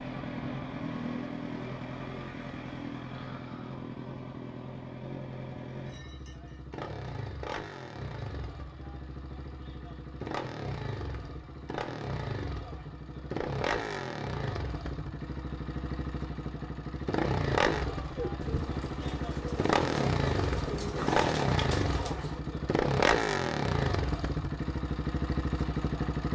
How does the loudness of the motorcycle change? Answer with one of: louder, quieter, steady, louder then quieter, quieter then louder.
louder.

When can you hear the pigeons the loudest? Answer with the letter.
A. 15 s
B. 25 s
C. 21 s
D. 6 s
C.